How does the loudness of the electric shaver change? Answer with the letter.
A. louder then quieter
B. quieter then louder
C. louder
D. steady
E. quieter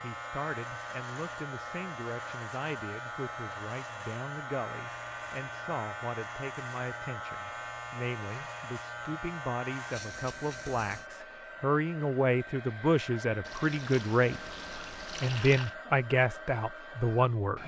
D.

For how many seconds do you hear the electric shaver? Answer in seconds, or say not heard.
11 s.